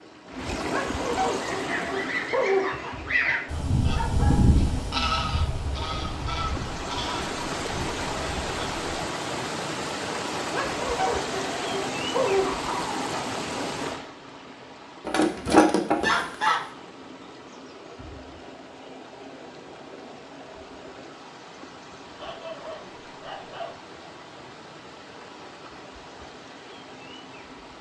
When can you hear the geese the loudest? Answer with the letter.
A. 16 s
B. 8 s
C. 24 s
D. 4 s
A.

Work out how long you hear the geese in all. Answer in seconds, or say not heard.
9 s.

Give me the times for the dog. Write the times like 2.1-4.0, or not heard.
0.6-3.0, 10.4-13.2, 22.1-23.8.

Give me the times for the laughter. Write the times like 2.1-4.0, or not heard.
not heard.